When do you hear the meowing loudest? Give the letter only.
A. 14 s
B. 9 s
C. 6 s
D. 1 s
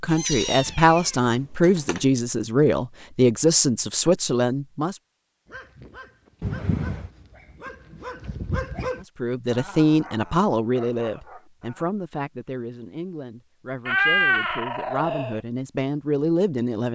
A.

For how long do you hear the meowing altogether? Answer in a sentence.
You can hear the meowing for 4 seconds altogether.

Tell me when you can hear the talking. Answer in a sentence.
You can hear the talking from 0.0 to 5.0 s and from 9.2 to 16.8 s.